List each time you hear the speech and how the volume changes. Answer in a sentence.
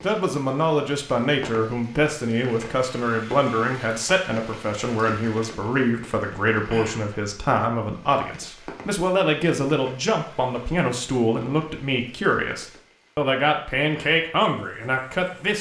The speech can be heard from 0.0 to 15.5 s, at a steady volume.